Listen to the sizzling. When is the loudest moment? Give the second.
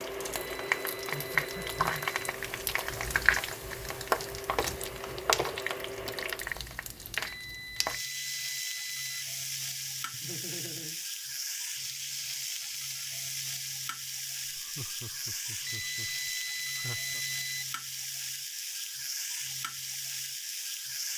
4 s.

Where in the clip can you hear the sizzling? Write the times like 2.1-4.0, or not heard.
0.0-21.1.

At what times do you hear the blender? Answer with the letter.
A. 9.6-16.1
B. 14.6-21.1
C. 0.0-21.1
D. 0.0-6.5
D.